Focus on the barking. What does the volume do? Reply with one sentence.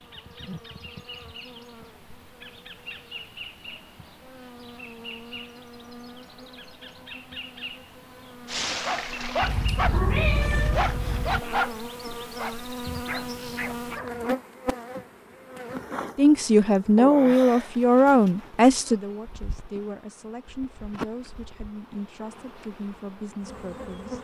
The loudness of the barking goes down.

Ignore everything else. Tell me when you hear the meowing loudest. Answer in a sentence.
The volume of the meowing peaks at 10 seconds.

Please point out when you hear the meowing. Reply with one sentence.
You can hear the meowing from 9.4 to 11.4 s.